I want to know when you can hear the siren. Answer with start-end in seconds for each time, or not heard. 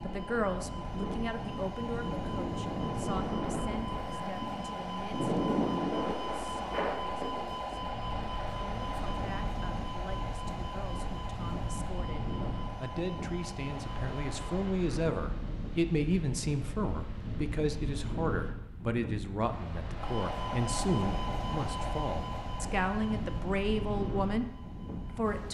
0.0-14.7, 19.9-25.4.